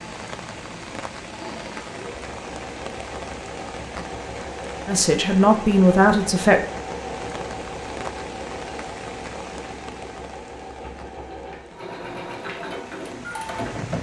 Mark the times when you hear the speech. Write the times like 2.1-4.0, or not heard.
4.8-6.6.